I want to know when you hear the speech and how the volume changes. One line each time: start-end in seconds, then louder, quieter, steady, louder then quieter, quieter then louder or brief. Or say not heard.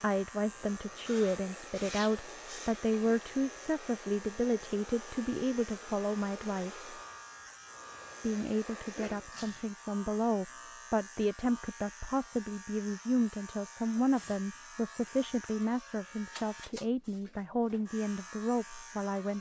0.0-6.9 steady
8.2-19.3 steady.